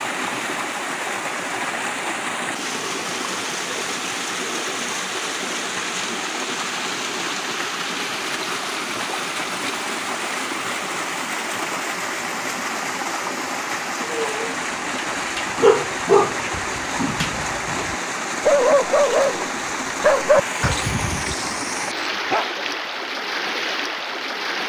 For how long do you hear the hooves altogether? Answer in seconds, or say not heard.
not heard.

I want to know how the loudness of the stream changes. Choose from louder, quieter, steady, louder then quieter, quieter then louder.
steady.